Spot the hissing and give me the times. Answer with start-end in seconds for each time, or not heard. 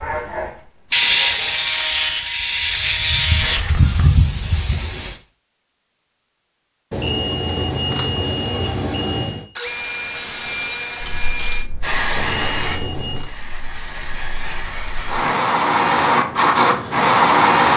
0.0-5.2, 11.0-17.7.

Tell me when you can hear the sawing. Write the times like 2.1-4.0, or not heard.
0.9-3.6, 9.6-11.7.